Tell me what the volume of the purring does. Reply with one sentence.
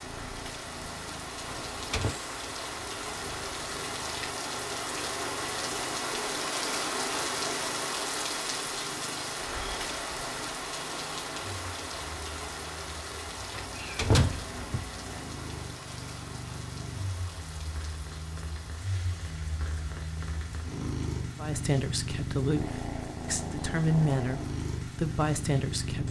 The loudness of the purring goes up.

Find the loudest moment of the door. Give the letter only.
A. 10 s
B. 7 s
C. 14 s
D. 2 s
C.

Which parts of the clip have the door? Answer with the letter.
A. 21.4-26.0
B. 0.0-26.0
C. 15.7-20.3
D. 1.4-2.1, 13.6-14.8
D.